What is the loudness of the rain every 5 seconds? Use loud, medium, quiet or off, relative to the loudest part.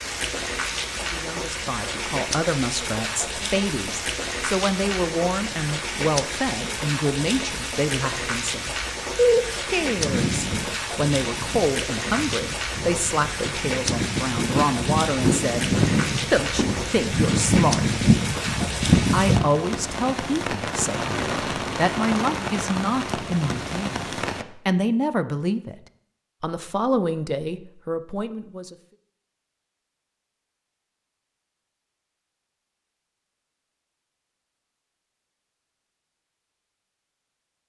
loud, loud, loud, loud, loud, off, off, off.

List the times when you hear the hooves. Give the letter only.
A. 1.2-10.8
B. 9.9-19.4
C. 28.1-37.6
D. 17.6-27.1
B.